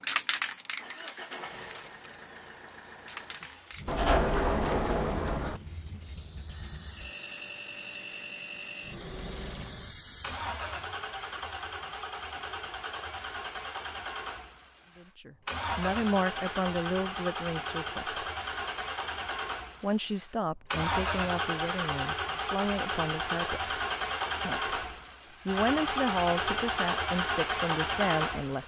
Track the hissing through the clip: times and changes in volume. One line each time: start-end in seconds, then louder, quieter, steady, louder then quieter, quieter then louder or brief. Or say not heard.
0.0-10.4 quieter.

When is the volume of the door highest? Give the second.
4 s.